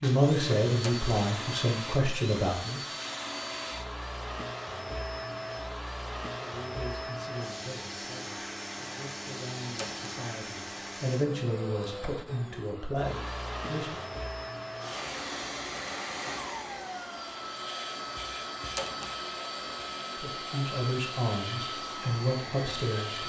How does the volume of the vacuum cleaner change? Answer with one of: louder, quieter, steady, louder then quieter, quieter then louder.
steady.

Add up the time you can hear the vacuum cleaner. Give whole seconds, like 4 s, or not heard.
23 s.